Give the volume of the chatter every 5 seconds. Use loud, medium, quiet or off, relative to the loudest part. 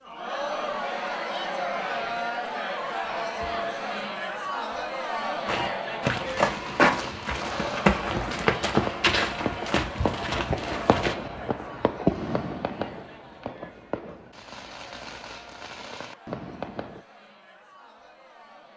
loud, loud, quiet, quiet.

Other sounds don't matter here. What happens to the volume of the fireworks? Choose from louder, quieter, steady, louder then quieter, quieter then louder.
louder then quieter.